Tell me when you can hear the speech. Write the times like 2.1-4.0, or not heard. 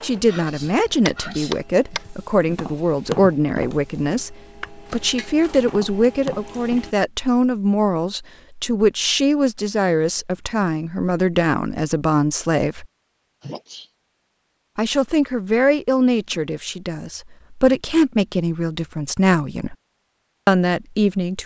0.0-12.8, 14.8-19.8, 20.4-21.4.